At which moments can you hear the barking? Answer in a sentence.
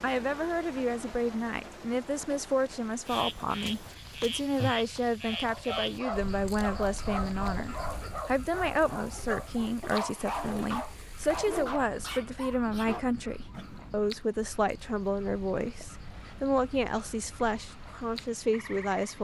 You can hear the barking from 5.2 to 13.8 s.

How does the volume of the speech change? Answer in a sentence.
The loudness of the speech stays about the same.